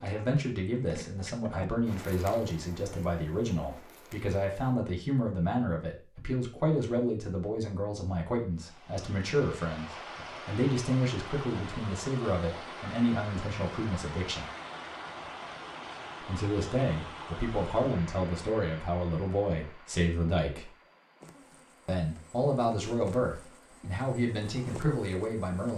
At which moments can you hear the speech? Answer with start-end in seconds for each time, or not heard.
0.0-14.4, 16.2-20.7, 21.9-25.7.